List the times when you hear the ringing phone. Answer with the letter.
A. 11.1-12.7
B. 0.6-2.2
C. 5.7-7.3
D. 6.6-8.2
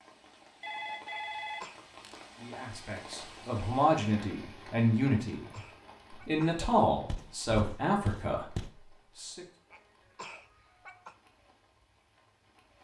B.